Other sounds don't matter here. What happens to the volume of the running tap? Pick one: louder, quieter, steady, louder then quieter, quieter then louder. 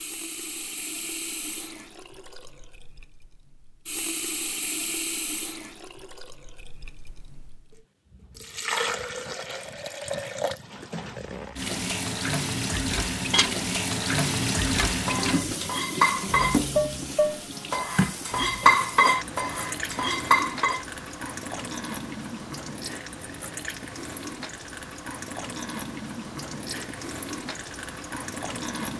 louder then quieter.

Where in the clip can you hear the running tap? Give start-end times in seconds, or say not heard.
0.0-28.9.